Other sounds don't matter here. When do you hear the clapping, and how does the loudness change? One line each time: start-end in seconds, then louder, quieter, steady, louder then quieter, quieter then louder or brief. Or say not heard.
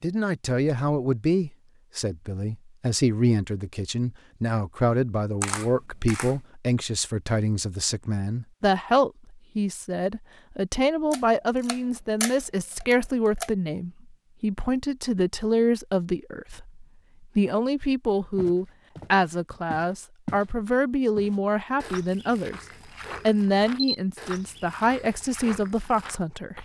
not heard.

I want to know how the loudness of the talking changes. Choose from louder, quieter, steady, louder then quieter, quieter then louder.
steady.